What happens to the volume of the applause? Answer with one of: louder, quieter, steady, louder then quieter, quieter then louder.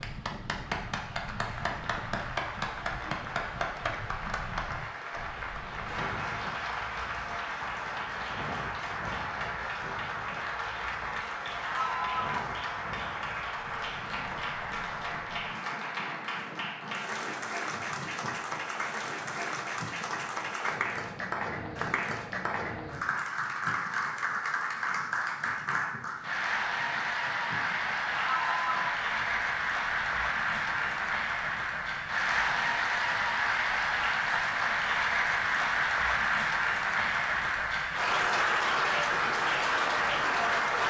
louder.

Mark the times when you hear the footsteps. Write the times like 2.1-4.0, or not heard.
not heard.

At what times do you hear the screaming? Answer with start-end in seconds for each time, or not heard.
11.6-12.4, 28.1-28.9.